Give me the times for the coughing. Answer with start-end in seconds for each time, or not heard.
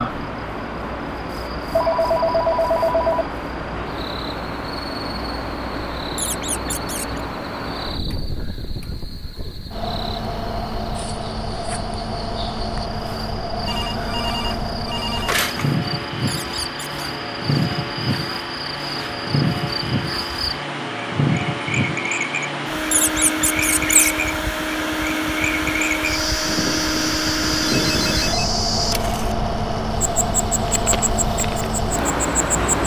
not heard.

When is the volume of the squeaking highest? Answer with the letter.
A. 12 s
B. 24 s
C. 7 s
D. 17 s
B.